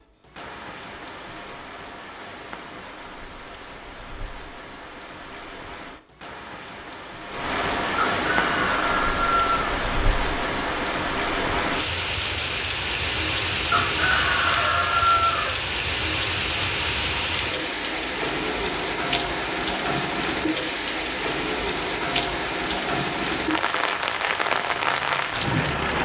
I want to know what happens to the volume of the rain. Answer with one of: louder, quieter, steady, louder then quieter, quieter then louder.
louder.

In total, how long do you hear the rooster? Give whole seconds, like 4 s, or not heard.
4 s.